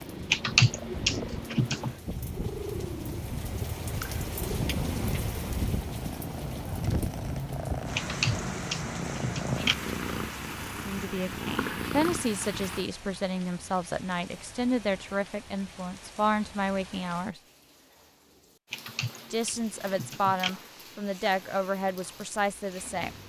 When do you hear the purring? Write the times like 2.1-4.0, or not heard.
0.0-12.9.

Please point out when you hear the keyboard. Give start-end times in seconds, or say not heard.
0.3-1.9, 8.0-9.8, 18.7-20.5.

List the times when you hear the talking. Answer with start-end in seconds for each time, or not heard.
10.8-17.4, 19.3-23.1.